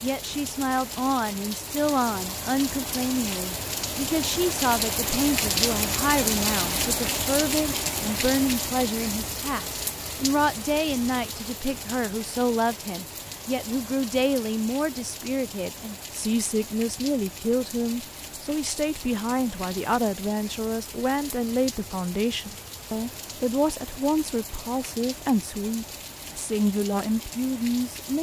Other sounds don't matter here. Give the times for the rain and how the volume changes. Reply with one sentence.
You can hear the rain from 0.0 to 28.1 s, getting quieter.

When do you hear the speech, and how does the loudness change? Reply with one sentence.
You can hear the speech from 0.0 to 28.1 s, at a steady volume.